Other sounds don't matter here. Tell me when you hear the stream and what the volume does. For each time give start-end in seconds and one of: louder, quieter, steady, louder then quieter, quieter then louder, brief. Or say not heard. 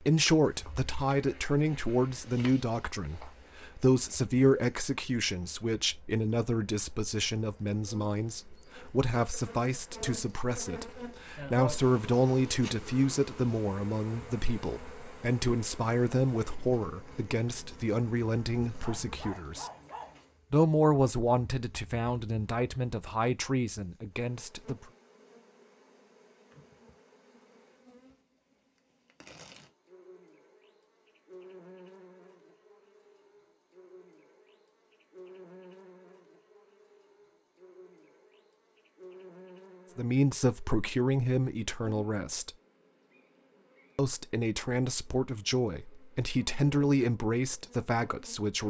not heard.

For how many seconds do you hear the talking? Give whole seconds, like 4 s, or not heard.
31 s.